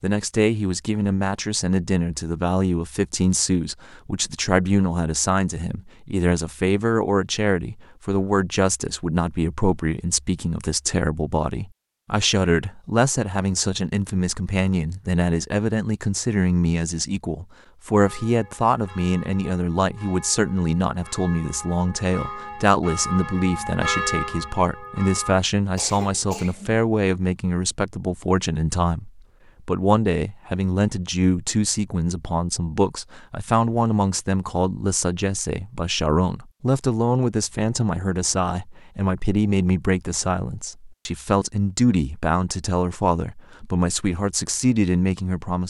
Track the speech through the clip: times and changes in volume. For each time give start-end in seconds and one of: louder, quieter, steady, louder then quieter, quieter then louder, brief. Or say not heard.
0.0-45.6 steady.